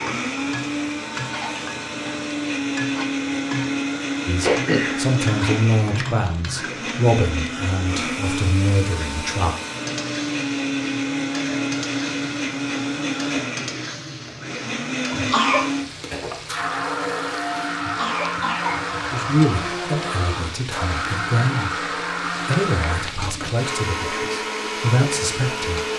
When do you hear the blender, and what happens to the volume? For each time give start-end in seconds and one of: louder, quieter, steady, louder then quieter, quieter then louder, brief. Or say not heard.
0.0-25.9 steady.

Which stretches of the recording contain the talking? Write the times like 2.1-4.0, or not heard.
4.2-9.6, 19.1-25.9.